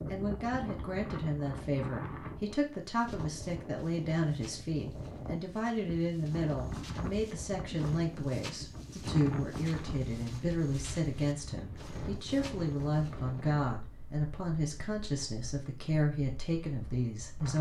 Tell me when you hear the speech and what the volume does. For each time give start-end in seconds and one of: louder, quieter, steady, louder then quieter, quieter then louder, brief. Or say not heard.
0.1-17.5 steady.